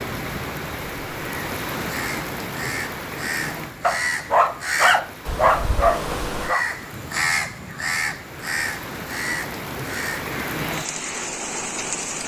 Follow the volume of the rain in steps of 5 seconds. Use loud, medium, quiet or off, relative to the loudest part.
loud, medium, loud.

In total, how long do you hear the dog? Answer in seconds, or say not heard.
3 s.